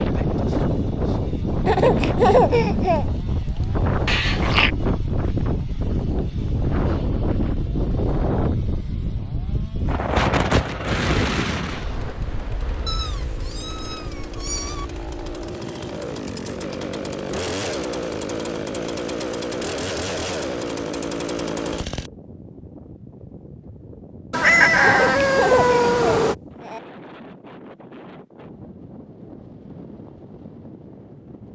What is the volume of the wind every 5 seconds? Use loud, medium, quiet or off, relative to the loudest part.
loud, loud, loud, quiet, quiet, quiet, quiet.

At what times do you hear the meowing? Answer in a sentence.
The meowing can be heard from 4.0 to 4.7 s, from 12.8 to 14.8 s and from 24.3 to 26.4 s.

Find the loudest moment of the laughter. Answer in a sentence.
The loudest moment of the laughter is at 2 seconds.